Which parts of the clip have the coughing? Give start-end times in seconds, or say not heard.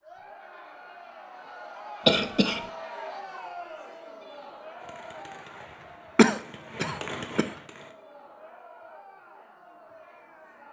2.0-2.6, 6.2-7.5.